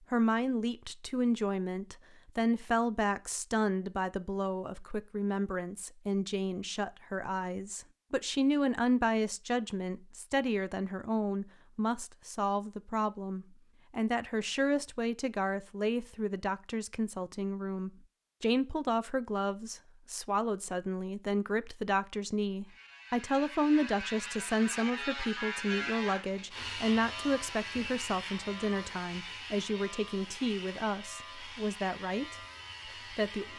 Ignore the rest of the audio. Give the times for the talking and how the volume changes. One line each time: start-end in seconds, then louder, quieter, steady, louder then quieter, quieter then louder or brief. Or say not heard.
0.1-33.5 steady.